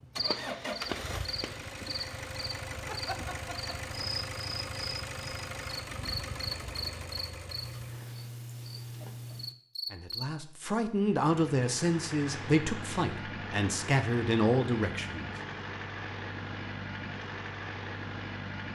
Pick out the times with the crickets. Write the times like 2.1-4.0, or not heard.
0.0-10.2.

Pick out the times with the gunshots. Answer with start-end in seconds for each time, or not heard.
0.2-1.6.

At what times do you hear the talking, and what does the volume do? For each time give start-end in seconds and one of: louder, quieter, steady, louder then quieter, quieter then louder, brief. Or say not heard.
9.9-15.3 steady.